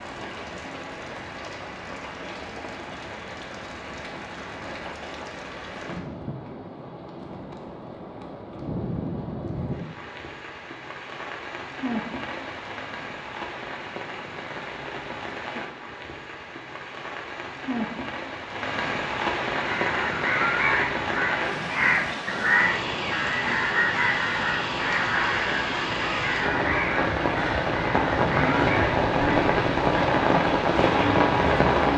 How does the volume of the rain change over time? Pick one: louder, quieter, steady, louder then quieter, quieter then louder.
louder.